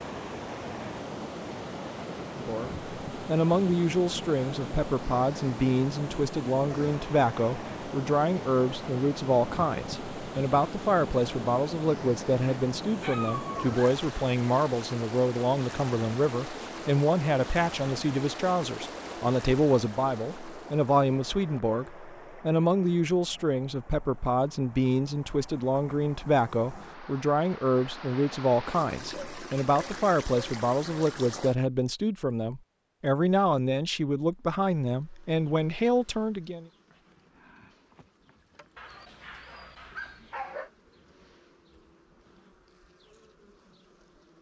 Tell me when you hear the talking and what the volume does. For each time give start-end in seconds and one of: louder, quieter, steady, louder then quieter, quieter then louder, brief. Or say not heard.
2.4-36.6 steady.